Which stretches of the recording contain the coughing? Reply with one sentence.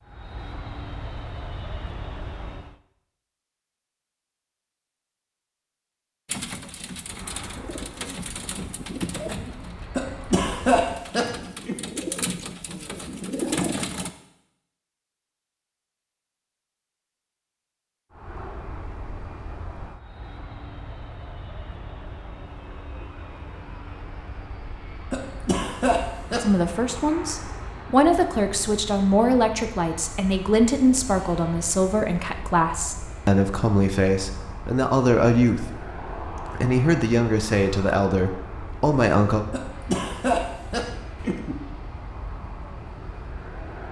The coughing can be heard from 9.9 to 11.8 s, from 25.1 to 26.5 s and from 39.5 to 41.5 s.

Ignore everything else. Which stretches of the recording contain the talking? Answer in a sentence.
You can hear the talking from 26.4 to 39.5 s.